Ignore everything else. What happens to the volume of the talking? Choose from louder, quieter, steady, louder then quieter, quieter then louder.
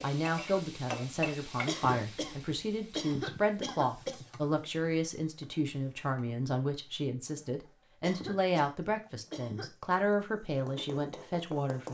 steady.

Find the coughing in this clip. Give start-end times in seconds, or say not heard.
1.6-4.2, 8.0-9.7.